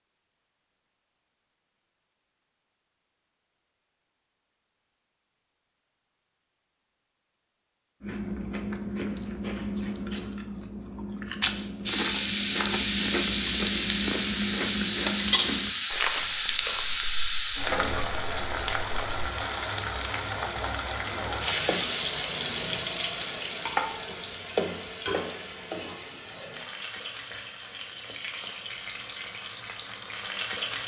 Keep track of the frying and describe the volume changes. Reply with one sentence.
The volume of the frying goes down.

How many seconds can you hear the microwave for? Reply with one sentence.
The microwave can't be heard in this clip.